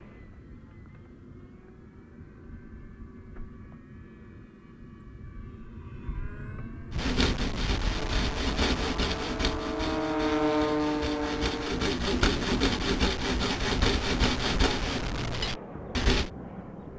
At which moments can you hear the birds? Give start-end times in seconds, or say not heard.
not heard.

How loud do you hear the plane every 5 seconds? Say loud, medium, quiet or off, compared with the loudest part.
quiet, medium, loud, medium.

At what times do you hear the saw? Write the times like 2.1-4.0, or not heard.
6.9-16.3.